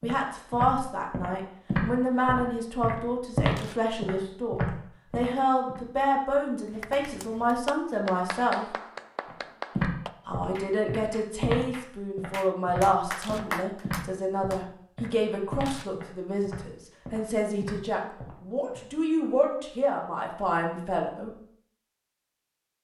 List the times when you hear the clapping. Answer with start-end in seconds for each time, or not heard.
6.7-14.7.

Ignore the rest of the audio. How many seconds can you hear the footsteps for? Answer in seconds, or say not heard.
15 s.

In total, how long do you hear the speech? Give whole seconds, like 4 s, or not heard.
20 s.